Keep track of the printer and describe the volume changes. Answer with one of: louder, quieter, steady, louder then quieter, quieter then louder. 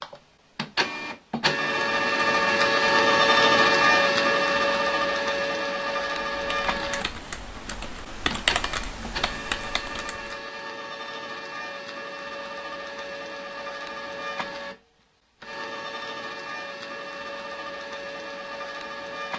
quieter.